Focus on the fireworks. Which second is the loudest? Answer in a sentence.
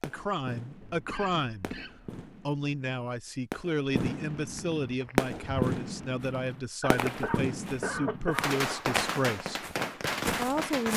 The loudest moment of the fireworks is at 5 seconds.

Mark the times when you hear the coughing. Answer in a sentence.
The coughing can be heard from 0.8 to 2.2 s and from 6.8 to 8.8 s.